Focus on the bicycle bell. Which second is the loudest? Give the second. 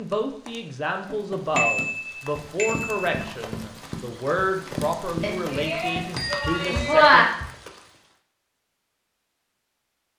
7 s.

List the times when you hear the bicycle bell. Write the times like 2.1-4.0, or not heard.
1.6-3.1, 5.2-7.2.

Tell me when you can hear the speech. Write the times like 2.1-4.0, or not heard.
0.0-7.2.